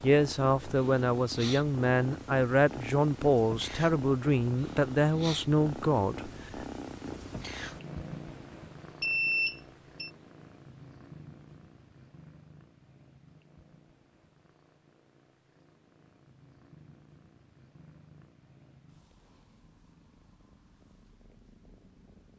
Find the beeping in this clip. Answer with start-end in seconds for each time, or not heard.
9.0-10.1.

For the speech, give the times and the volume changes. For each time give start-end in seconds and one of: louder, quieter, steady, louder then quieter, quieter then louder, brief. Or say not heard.
0.0-6.7 steady.